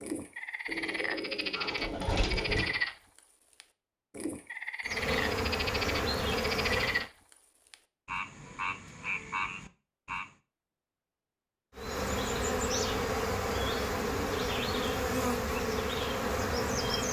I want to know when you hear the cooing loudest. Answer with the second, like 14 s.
2 s.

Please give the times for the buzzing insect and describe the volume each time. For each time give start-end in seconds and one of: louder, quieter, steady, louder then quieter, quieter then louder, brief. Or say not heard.
4.8-7.1 brief
11.8-17.0 steady.